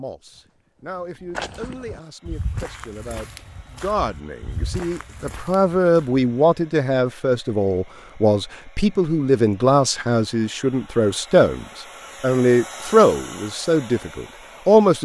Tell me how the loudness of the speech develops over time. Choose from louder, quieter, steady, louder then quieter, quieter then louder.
louder.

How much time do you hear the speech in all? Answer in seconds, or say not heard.
15 s.